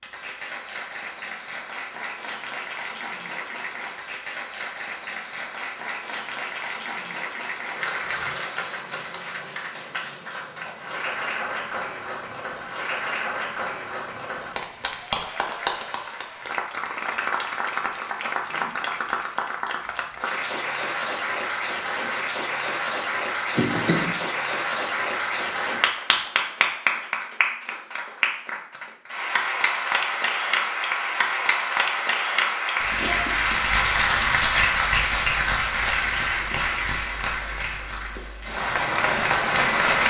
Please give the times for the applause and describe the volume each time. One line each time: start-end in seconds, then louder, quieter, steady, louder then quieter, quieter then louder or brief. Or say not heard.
0.0-40.0 louder.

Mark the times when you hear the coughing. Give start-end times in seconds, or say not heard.
23.6-24.2.